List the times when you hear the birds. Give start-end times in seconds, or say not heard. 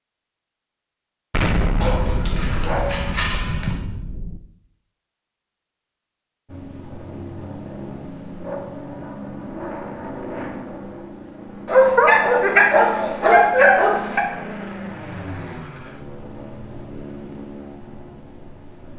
not heard.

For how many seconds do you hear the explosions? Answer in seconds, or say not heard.
3 s.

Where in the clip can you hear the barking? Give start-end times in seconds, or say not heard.
1.8-3.8, 11.7-14.2.